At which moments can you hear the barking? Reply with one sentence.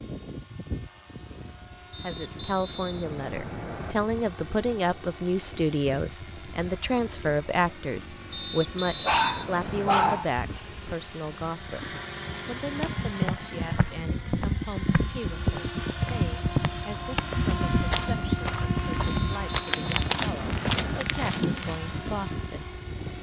You can hear the barking from 9.0 to 10.7 s.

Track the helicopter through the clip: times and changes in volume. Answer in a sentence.
The helicopter can be heard from 0.0 to 23.1 s, getting louder.